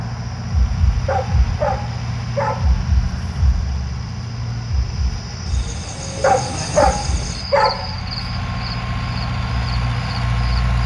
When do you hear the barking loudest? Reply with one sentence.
The loudest moment of the barking is at 7 seconds.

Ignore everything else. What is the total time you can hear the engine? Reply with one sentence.
The engine can be heard for 11 seconds in total.